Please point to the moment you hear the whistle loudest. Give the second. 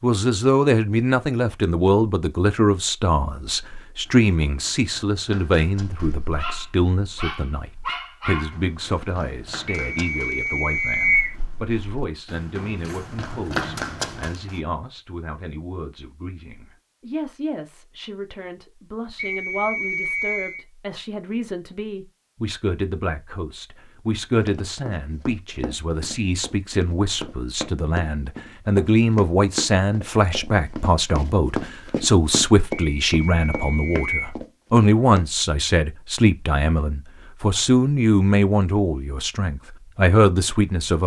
11 s.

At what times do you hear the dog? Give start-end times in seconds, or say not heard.
5.8-8.6.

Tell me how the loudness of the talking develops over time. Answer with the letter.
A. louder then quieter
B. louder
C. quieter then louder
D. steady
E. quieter
C.